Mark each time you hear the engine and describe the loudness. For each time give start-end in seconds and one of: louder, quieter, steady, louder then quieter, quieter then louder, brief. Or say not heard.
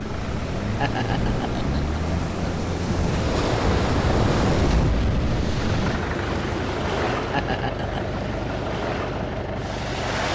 0.0-10.3 steady.